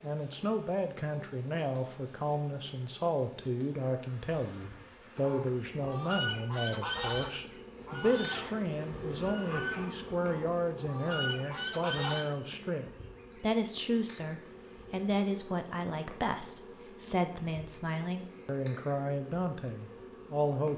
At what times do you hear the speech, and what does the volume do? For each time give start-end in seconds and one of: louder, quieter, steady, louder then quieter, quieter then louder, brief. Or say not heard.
0.0-20.7 steady.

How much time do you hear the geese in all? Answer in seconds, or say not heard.
7 s.